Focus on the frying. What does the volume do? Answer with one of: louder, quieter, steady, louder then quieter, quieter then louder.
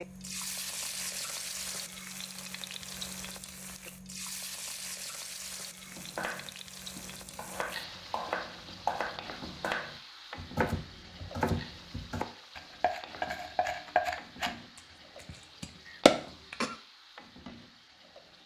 quieter.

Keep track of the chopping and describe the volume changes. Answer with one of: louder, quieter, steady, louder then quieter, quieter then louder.
louder.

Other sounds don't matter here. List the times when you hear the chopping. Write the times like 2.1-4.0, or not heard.
5.9-16.8.